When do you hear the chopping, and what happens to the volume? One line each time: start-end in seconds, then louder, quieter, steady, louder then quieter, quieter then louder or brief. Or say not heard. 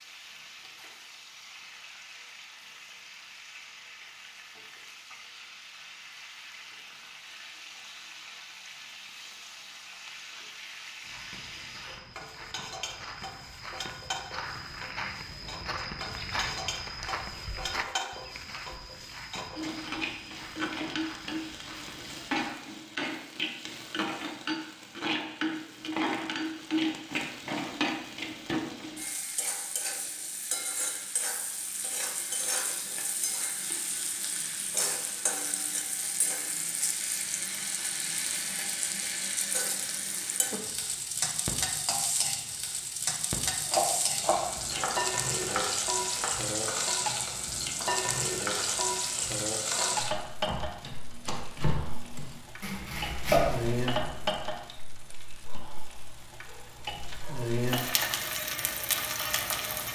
43.7-54.2 quieter then louder.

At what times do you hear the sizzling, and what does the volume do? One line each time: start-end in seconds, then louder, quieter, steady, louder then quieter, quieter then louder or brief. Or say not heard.
0.0-59.8 louder.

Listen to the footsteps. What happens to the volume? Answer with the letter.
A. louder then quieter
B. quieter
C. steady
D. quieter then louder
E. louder
A.